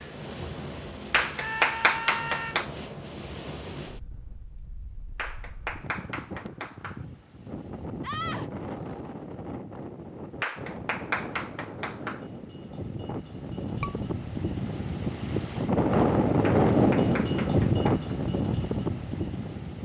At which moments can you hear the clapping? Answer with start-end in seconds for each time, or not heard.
1.1-2.7, 5.2-7.0, 10.4-12.2, 16.4-18.1.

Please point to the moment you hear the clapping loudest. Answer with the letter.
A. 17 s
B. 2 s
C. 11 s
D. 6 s
B.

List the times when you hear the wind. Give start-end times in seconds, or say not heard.
0.0-19.8.